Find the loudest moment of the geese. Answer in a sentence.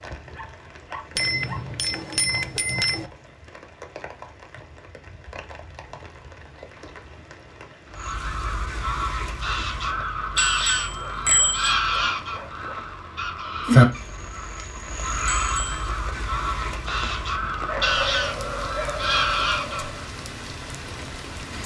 The loudest moment of the geese is at 14 seconds.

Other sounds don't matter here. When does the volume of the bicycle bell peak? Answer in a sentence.
The volume of the bicycle bell peaks at 11 seconds.